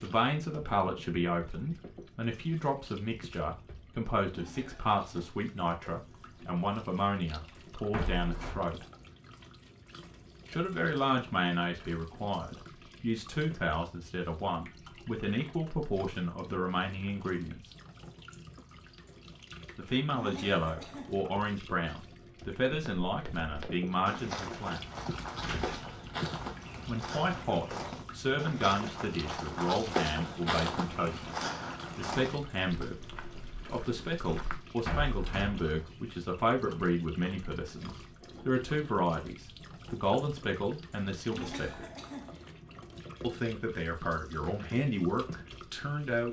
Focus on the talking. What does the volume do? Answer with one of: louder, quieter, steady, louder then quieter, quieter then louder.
steady.